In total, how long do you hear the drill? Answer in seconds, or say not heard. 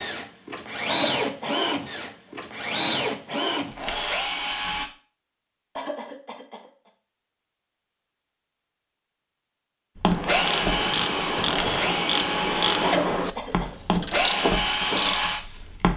11 s.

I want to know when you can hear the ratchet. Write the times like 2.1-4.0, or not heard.
10.1-15.2.